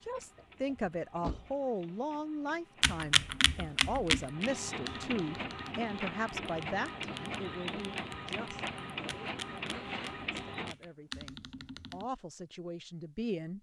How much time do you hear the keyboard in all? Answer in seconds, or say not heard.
9 s.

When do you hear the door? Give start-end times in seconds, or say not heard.
0.1-1.6.